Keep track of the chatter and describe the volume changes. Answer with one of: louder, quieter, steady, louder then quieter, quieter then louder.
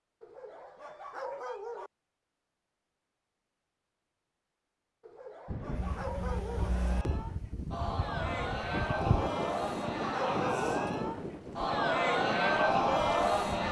louder.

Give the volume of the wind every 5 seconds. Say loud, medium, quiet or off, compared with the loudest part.
off, loud, loud.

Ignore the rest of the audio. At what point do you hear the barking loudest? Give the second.
10 s.